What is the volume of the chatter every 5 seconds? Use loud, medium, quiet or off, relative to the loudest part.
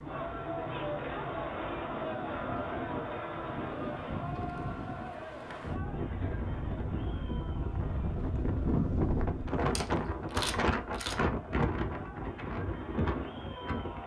loud, medium, medium.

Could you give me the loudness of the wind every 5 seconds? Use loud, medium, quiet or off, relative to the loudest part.
medium, loud, loud.